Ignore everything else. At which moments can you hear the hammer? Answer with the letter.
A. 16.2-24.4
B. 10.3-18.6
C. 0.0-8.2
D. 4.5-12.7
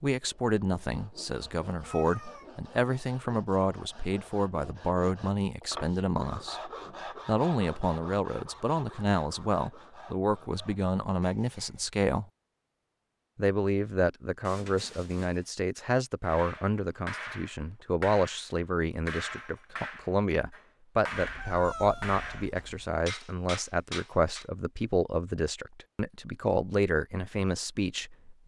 A.